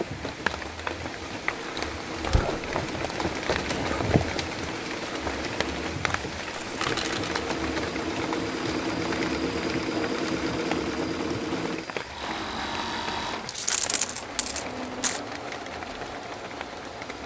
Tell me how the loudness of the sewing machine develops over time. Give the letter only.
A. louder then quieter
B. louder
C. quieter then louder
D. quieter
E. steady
A.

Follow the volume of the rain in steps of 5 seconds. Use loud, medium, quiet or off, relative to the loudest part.
loud, loud, medium, medium.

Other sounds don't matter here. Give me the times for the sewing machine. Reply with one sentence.
The sewing machine can be heard from 0.0 to 17.2 s.